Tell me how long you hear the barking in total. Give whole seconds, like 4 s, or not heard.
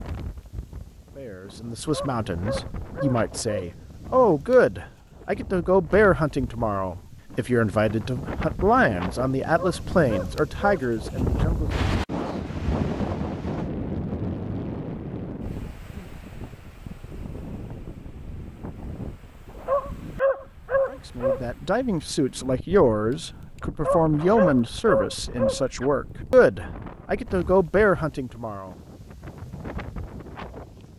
7 s.